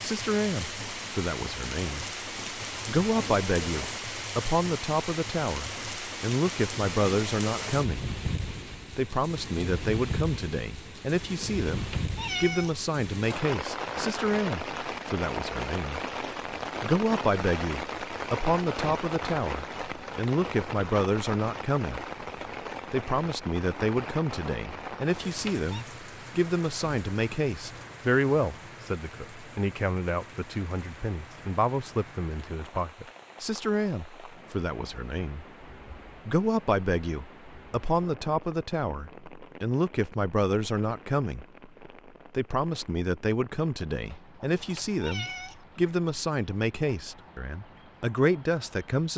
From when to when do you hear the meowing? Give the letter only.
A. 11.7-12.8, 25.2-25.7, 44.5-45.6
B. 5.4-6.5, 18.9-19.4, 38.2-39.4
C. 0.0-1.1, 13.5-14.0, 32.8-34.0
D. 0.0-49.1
A.